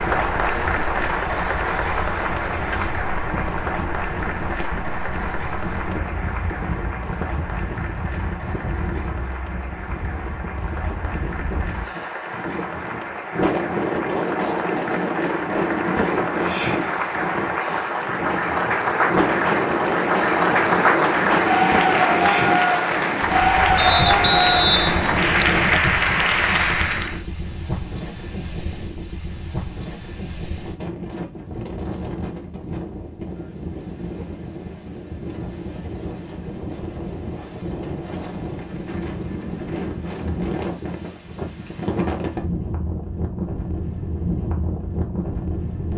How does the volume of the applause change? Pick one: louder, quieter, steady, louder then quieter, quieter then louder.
quieter then louder.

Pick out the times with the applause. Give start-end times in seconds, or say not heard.
0.0-27.2.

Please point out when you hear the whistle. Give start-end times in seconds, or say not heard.
23.8-25.8.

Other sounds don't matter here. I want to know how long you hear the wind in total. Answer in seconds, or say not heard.
46 s.